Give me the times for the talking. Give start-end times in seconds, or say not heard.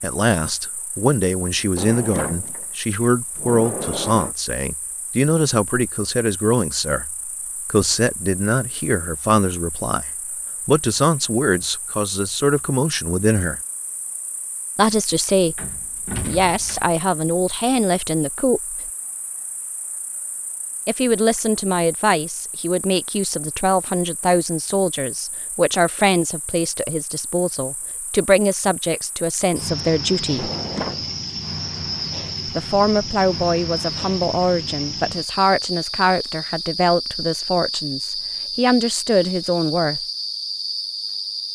0.0-10.1, 10.7-13.6, 14.8-18.8, 20.9-30.5, 32.5-40.0.